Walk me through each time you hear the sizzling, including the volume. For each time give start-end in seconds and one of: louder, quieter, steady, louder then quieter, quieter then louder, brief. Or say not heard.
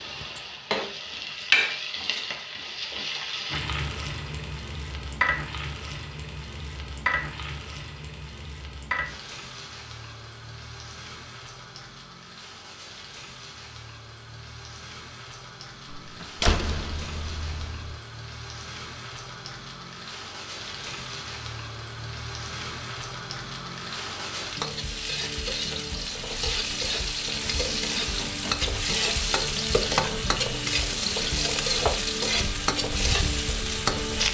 0.0-34.2 quieter then louder.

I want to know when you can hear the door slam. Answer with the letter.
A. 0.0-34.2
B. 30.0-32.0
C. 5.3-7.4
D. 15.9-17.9
D.